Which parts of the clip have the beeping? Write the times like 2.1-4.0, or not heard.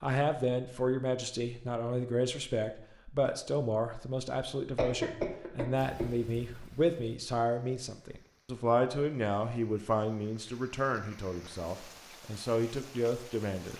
not heard.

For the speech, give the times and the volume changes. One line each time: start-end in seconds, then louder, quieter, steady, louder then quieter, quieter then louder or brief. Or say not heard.
0.0-13.7 steady.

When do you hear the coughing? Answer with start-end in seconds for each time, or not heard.
4.8-6.0.